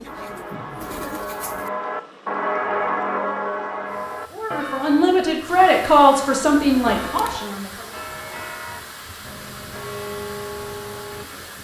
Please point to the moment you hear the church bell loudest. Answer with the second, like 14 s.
3 s.